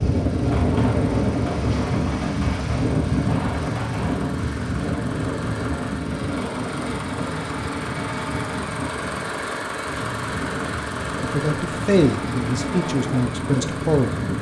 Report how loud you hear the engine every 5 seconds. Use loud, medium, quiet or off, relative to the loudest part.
medium, loud, loud.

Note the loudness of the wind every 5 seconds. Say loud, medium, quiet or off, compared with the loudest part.
loud, medium, medium.